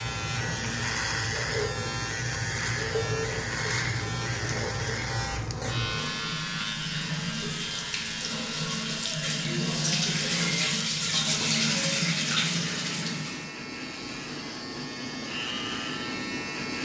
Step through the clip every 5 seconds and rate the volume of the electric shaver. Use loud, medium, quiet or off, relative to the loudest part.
loud, loud, medium, loud.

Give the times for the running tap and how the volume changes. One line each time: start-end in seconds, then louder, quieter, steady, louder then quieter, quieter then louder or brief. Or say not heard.
0.0-13.6 louder.